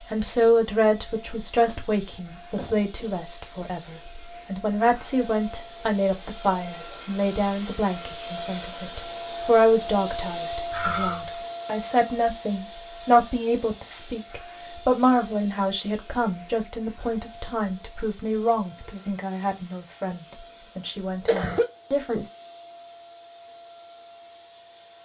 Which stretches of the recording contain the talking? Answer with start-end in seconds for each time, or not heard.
0.1-22.3.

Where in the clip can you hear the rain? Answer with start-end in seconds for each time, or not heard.
not heard.